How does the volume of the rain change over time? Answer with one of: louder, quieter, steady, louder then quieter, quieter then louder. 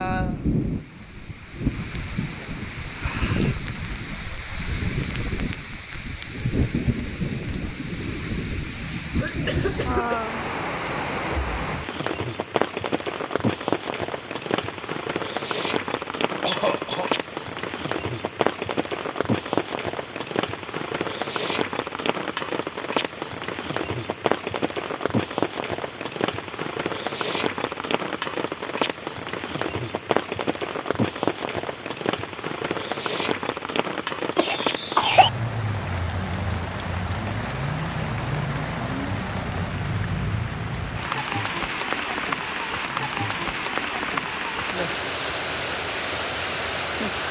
steady.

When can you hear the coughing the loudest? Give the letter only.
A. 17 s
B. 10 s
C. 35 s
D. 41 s
C.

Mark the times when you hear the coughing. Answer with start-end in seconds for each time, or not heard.
9.2-10.2, 16.4-17.1, 34.4-35.3.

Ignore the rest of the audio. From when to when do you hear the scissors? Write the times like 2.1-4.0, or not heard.
not heard.